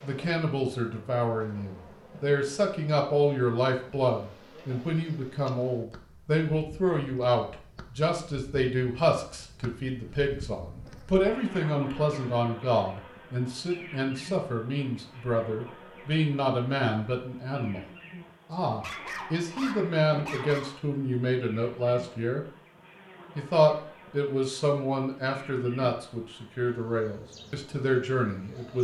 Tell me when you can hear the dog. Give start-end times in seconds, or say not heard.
18.8-20.8.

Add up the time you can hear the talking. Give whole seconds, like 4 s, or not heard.
27 s.